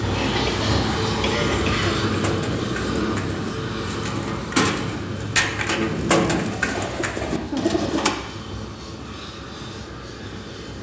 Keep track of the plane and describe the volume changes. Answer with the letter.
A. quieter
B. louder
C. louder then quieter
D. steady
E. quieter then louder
A.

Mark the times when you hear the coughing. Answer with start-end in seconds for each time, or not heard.
0.1-2.0, 6.7-7.8.